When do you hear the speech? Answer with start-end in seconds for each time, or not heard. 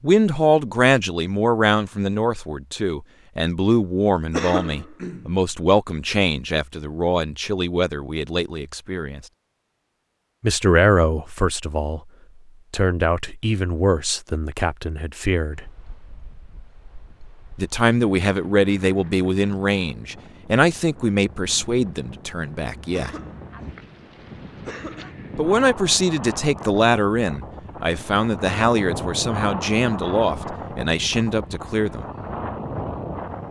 0.0-9.2, 10.4-12.0, 12.7-15.7, 17.6-23.1, 25.4-32.0.